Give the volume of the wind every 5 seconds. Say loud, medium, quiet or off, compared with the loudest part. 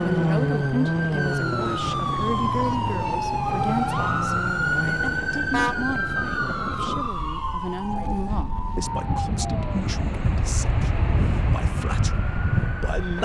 medium, medium, loud.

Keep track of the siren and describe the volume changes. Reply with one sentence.
The loudness of the siren goes down.